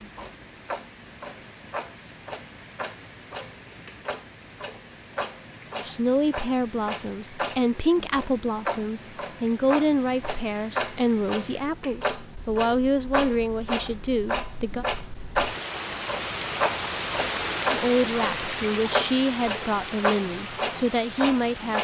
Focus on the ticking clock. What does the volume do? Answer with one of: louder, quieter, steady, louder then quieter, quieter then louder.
louder.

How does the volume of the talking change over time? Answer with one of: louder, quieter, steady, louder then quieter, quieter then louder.
steady.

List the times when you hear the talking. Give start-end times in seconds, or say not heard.
5.8-14.8, 17.7-21.7.